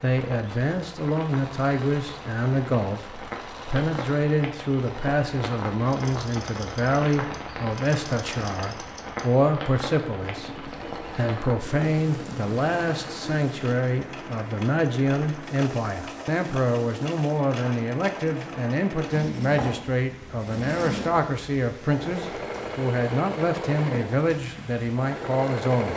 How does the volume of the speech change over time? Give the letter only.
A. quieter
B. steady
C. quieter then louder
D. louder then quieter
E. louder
B.